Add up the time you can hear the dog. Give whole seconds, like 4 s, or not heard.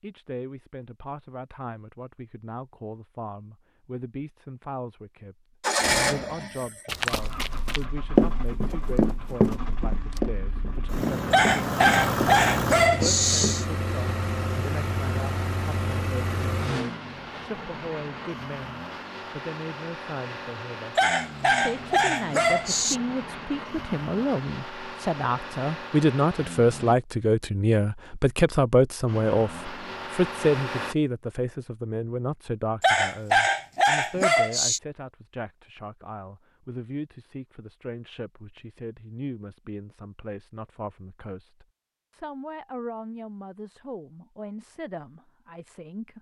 6 s.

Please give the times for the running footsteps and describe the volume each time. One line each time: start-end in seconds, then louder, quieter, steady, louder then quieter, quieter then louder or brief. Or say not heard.
6.8-13.6 quieter.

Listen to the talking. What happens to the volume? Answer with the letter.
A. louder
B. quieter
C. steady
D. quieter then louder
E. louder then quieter
E.